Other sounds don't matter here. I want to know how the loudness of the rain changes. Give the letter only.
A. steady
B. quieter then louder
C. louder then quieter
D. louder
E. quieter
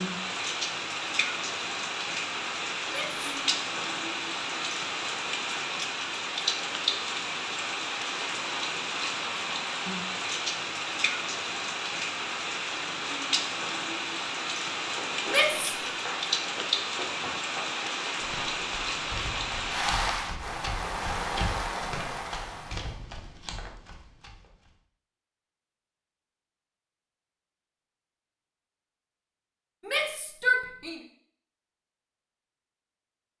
A.